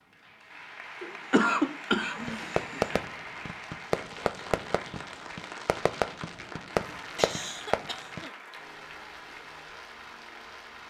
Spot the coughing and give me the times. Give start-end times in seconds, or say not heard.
1.0-3.0, 7.2-8.3.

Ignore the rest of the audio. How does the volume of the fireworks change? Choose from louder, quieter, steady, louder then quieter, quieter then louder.
quieter then louder.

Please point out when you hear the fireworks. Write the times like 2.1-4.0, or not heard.
2.1-8.2.